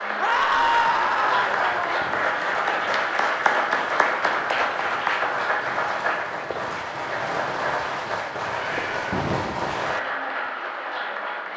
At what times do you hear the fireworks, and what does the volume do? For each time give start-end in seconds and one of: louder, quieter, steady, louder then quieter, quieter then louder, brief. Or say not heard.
0.8-10.0 louder.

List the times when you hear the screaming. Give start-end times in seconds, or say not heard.
0.1-1.9, 8.5-9.2.